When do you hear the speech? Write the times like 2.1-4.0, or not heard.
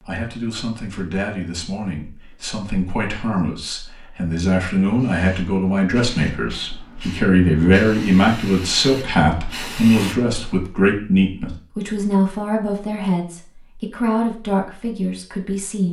0.0-15.8.